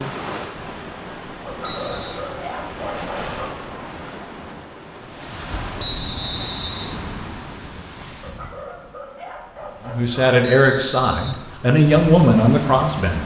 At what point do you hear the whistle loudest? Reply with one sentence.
The loudest moment of the whistle is at 6 seconds.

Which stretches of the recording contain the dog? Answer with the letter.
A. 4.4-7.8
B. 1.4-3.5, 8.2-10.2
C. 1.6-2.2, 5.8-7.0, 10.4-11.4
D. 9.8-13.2
B.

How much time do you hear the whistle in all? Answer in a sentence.
The whistle can be heard for 3 seconds in total.